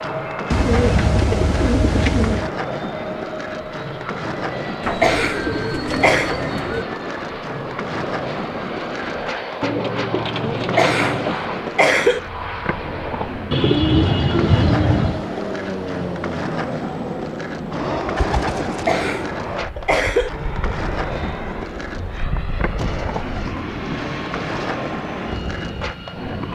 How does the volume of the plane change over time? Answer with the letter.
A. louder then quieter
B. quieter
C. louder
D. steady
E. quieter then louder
D.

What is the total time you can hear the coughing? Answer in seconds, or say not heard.
4 s.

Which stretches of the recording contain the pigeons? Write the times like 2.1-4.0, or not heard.
0.5-2.5, 4.8-6.8, 9.6-11.4, 13.5-15.2, 18.1-19.1, 22.8-24.6.